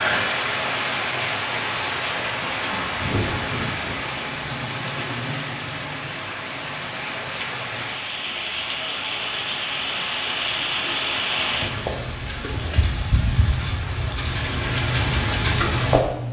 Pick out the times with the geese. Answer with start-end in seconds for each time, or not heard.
2.5-4.0.